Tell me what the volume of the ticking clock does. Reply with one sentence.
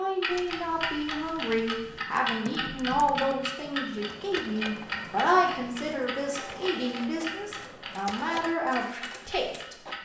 The loudness of the ticking clock goes down.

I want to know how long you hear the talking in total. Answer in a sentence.
You can hear the talking for 10 seconds altogether.